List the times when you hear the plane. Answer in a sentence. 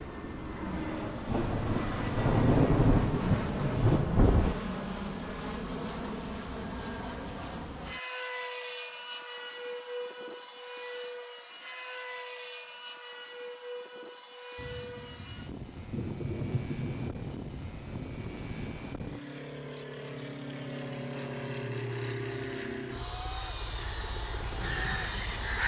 You can hear the plane from 0.0 to 25.6 s.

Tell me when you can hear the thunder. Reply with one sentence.
The thunder can be heard from 1.2 to 4.5 s and from 14.6 to 18.8 s.